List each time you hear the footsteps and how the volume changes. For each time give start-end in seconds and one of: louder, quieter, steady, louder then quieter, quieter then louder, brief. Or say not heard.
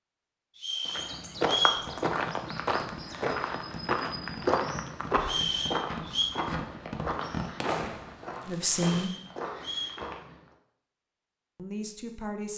0.8-10.5 quieter.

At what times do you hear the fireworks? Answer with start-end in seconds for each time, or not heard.
1.8-9.1.